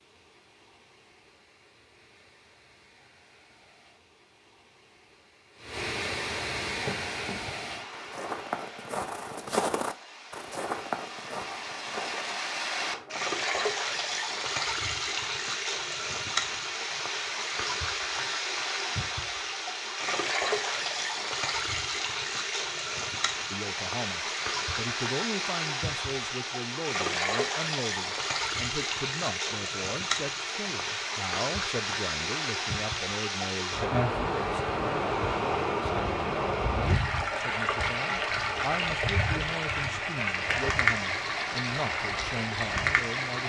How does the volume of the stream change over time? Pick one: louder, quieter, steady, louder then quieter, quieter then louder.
louder.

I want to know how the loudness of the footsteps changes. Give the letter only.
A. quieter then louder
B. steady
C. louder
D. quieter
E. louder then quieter
E.